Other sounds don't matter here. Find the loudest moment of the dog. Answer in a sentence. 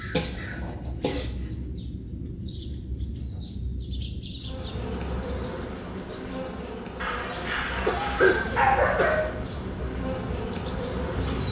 The loudest moment of the dog is at 9 seconds.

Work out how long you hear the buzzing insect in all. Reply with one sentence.
You can hear the buzzing insect for 7 seconds altogether.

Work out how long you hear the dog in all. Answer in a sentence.
You can hear the dog for 2 seconds altogether.